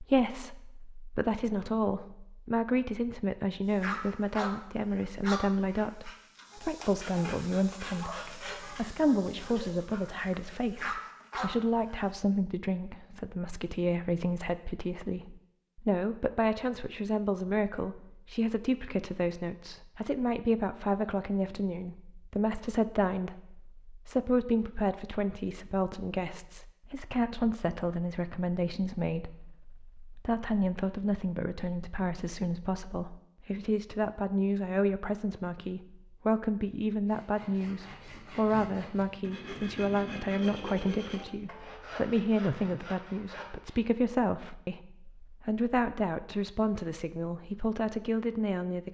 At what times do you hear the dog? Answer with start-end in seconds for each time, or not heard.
3.7-12.1.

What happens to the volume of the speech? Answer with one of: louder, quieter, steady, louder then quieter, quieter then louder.
steady.